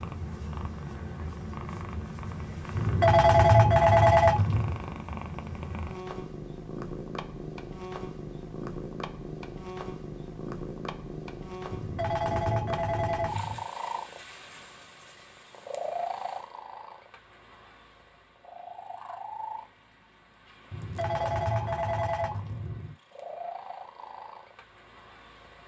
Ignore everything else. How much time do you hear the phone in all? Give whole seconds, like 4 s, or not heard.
6 s.